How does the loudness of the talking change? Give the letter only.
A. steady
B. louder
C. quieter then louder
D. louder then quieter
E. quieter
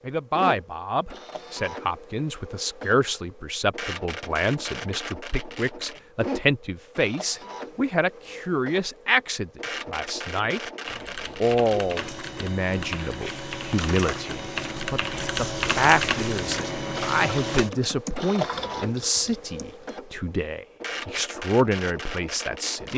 A.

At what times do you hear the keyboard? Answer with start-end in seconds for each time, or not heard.
10.8-19.9.